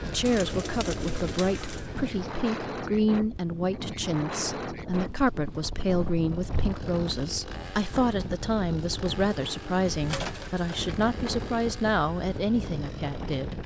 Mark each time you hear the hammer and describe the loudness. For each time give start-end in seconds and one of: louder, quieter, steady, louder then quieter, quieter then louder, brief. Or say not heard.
not heard.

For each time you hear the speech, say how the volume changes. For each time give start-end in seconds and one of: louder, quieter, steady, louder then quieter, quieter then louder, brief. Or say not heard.
0.1-13.6 steady.